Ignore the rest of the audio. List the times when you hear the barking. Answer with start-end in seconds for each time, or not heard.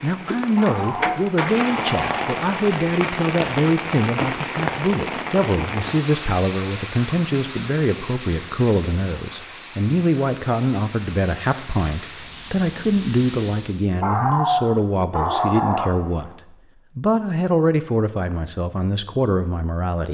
0.6-2.4, 14.0-16.3.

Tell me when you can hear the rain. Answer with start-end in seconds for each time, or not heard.
0.0-13.9.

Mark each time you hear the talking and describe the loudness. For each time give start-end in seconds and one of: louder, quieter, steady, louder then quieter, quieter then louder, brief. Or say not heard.
0.0-20.0 steady.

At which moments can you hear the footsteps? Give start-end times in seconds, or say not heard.
not heard.